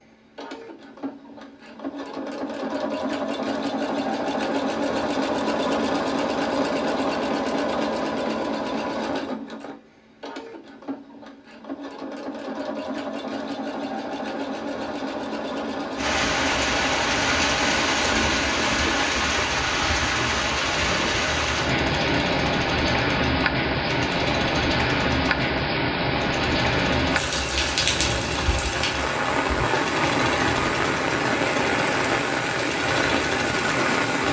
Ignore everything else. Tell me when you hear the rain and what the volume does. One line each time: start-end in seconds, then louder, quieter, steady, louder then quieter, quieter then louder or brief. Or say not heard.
15.9-34.2 steady.